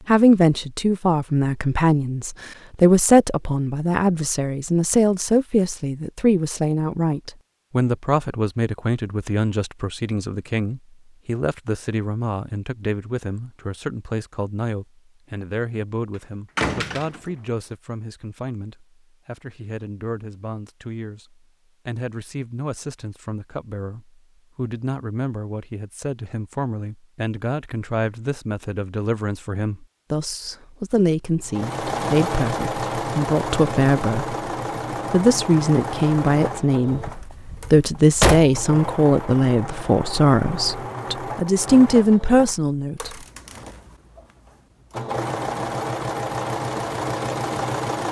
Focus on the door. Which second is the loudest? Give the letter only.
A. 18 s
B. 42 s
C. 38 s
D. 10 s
C.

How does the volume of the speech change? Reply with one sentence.
The volume of the speech goes down, then up.